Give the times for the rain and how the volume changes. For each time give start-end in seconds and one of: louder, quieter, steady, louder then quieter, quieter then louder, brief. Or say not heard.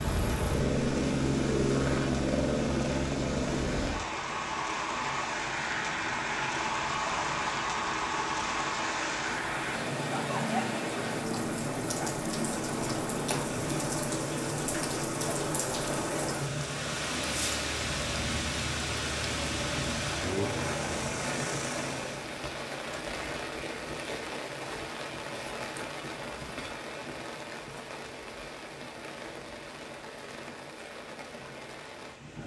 0.0-32.4 louder then quieter.